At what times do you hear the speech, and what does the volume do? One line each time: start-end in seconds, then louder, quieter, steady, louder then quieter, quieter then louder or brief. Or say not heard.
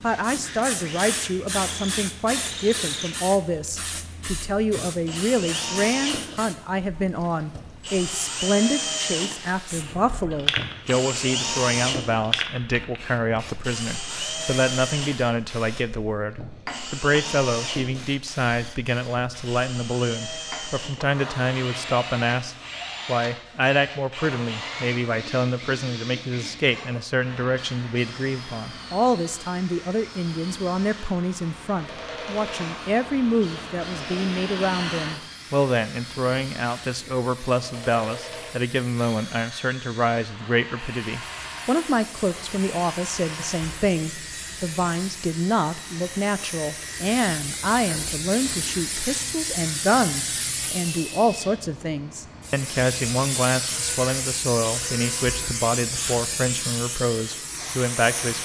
0.0-58.4 steady.